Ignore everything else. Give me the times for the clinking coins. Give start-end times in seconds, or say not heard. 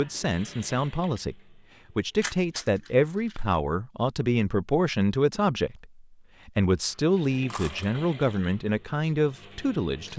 2.2-2.6, 6.9-8.0.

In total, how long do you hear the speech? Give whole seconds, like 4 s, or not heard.
10 s.